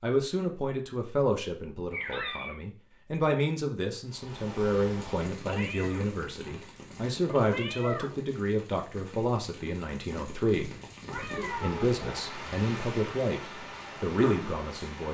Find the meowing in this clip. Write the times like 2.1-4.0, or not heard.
1.9-2.6, 5.5-8.2, 11.1-12.3.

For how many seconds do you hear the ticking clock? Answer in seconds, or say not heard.
not heard.